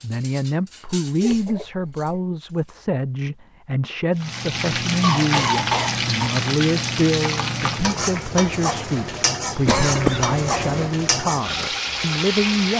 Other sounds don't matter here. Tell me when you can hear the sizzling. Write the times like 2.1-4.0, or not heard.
4.2-12.7.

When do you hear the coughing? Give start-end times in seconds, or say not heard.
1.2-2.2, 5.0-6.3, 9.7-10.9.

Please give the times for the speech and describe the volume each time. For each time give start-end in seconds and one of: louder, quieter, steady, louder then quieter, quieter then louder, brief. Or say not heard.
0.0-12.7 steady.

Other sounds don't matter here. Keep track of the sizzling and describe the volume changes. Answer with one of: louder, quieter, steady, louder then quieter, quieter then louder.
steady.